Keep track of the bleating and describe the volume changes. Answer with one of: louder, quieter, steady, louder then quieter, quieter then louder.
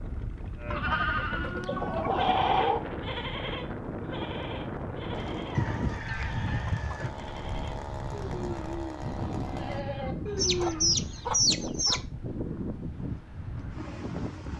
quieter then louder.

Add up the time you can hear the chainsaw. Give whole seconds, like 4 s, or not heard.
5 s.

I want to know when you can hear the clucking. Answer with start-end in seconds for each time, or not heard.
0.9-2.9, 5.5-7.1, 10.3-12.0.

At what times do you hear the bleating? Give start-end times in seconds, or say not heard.
0.6-11.0.